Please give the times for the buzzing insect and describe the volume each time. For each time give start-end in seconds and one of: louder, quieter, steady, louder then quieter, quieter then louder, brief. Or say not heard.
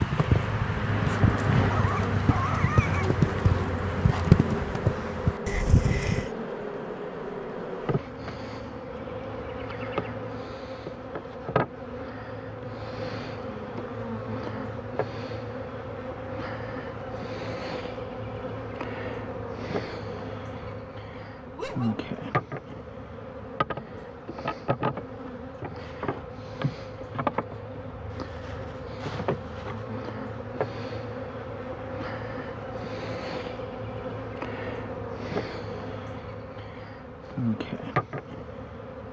0.0-39.0 steady.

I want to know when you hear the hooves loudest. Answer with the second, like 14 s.
4 s.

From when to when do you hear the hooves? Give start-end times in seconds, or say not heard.
0.0-6.3.